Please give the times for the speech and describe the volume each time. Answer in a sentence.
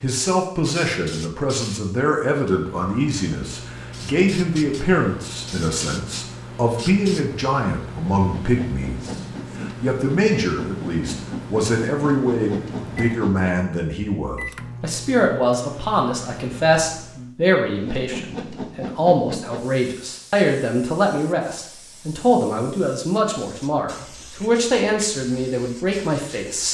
You can hear the speech from 0.0 to 26.7 s, at a steady volume.